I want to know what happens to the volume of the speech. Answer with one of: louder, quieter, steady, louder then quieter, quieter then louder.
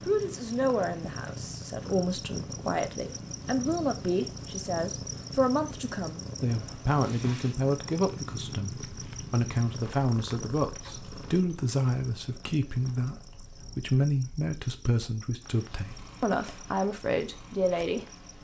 steady.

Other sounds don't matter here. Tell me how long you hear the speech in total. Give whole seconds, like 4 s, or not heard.
18 s.